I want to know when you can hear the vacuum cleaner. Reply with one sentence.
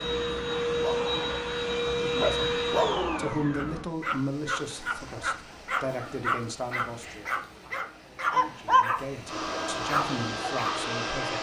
You can hear the vacuum cleaner from 0.0 to 3.9 s and from 9.2 to 11.3 s.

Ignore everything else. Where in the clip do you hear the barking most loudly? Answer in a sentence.
The loudest moment of the barking is at 9 seconds.